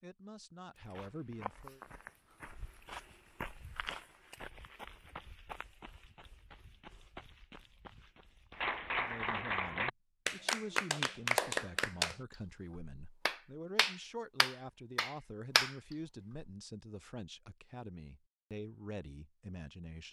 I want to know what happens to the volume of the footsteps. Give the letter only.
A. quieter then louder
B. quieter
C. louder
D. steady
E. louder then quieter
B.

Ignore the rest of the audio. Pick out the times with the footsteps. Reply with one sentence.
The footsteps can be heard from 0.8 to 9.4 s.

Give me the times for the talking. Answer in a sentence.
The talking can be heard from 0.0 to 1.8 s and from 8.9 to 20.0 s.